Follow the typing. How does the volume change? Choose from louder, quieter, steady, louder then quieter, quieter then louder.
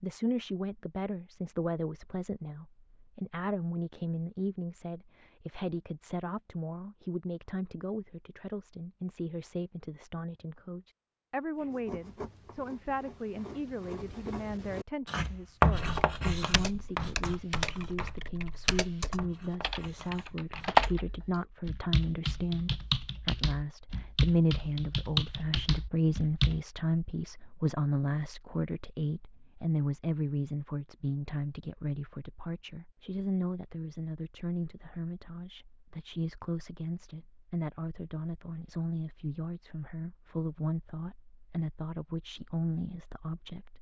louder then quieter.